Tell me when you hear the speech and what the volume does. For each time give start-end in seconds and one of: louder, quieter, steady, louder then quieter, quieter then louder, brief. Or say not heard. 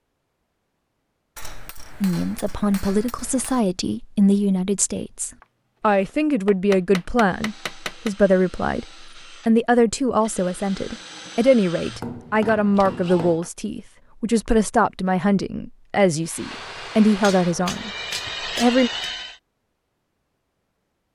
2.0-18.9 steady.